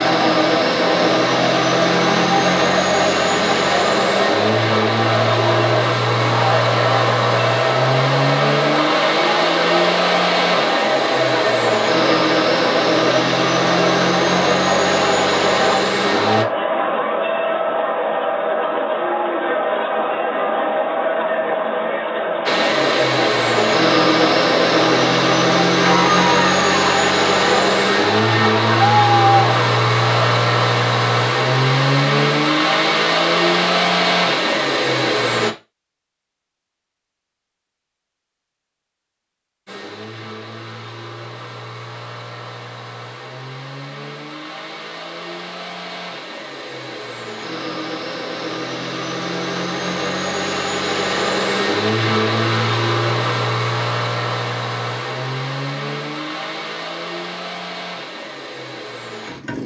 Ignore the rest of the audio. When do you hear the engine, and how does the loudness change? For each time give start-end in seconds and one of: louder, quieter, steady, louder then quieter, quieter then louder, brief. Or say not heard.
0.0-16.4 steady
22.4-35.5 steady
39.6-59.6 louder then quieter.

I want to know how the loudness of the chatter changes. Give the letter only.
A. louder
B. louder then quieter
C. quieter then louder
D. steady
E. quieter
D.